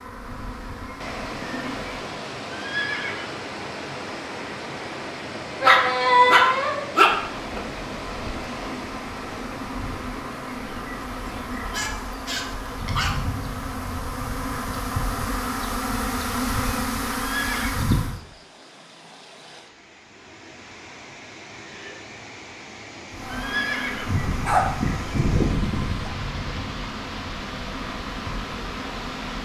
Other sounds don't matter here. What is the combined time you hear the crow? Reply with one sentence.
The crow can't be heard in this clip.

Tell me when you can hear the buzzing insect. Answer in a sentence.
The buzzing insect can be heard from 0.0 to 2.1 s, from 7.3 to 18.2 s and from 23.1 to 29.4 s.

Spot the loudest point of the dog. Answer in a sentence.
The volume of the dog peaks at 6 seconds.